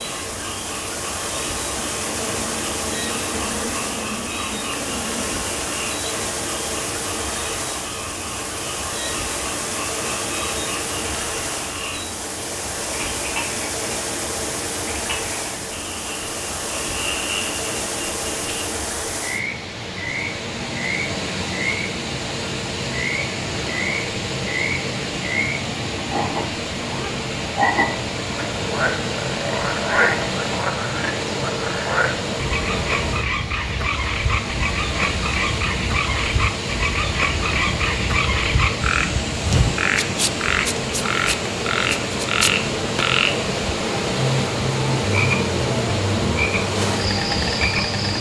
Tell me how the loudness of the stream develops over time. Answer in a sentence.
The volume of the stream stays about the same.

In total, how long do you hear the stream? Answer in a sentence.
You can hear the stream for 48 seconds altogether.